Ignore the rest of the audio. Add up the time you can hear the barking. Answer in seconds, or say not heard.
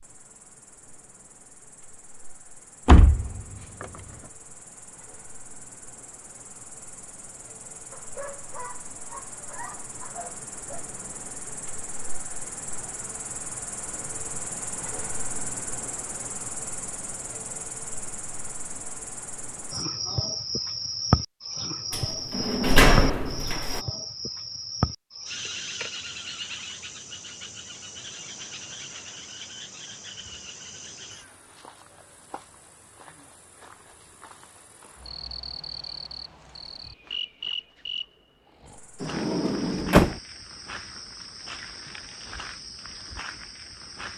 3 s.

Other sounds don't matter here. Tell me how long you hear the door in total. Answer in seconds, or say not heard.
4 s.